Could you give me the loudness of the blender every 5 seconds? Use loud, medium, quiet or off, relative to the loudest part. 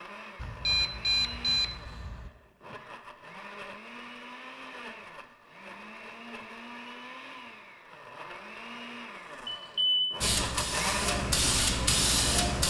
medium, medium, loud.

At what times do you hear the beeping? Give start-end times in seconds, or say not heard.
0.4-2.3, 9.4-10.2.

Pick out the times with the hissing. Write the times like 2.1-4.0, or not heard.
10.2-12.6.